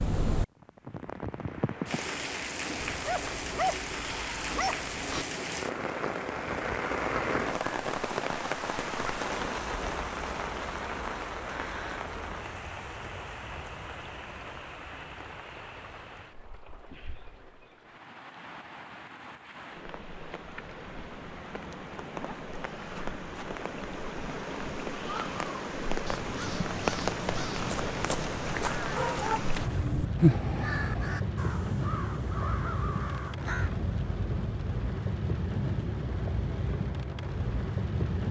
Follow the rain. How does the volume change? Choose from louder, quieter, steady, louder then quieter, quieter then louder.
quieter then louder.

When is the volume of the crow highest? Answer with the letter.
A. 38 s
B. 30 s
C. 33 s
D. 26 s
B.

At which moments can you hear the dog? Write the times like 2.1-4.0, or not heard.
2.8-5.2, 27.7-29.4.